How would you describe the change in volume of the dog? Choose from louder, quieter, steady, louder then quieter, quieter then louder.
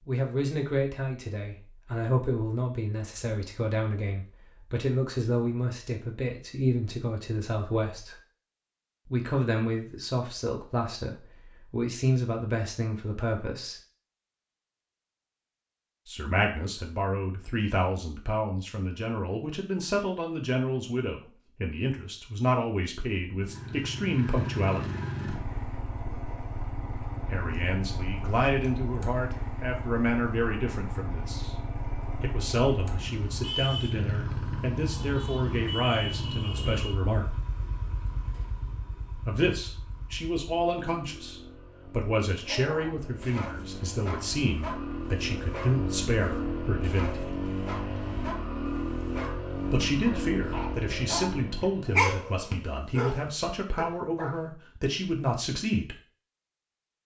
louder.